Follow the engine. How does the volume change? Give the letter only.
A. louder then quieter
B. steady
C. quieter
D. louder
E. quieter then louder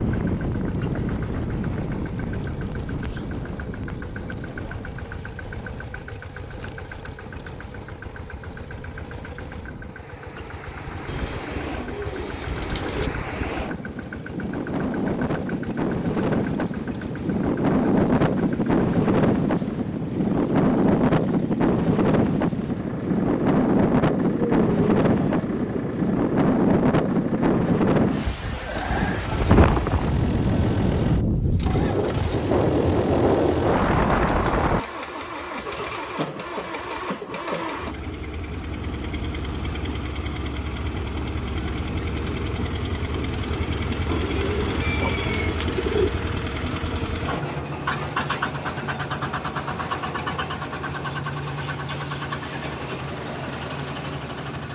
D.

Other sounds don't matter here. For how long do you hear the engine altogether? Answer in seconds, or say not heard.
55 s.